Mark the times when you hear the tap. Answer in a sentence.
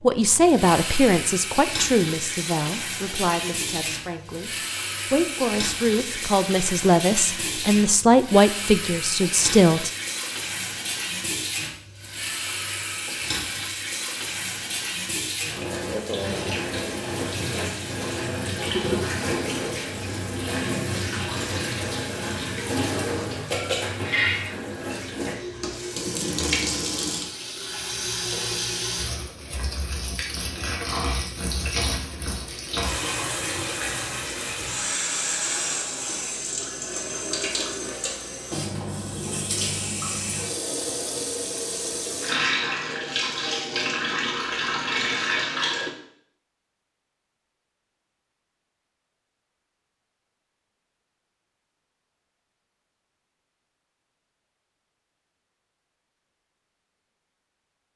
You can hear the tap from 0.0 to 45.9 s.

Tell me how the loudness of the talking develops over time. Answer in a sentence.
The loudness of the talking goes down, then up.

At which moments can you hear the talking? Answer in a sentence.
The talking can be heard from 0.0 to 9.9 s.